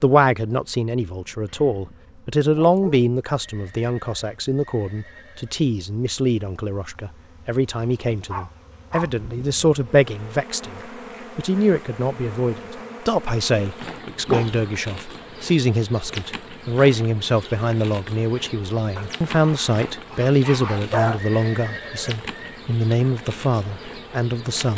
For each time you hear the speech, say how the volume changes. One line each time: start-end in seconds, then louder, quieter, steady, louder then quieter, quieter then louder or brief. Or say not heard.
0.0-24.7 steady.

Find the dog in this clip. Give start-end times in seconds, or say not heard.
1.4-3.0, 7.8-9.1, 14.2-14.7, 18.9-21.2.